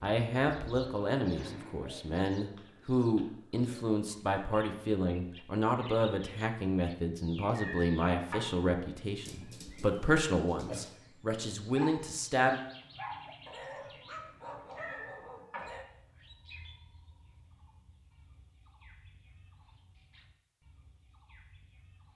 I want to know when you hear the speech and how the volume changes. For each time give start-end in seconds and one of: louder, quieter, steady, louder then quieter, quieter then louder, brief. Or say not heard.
0.0-12.6 steady.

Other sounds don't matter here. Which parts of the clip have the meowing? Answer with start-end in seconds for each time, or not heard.
7.5-8.6, 14.7-15.8.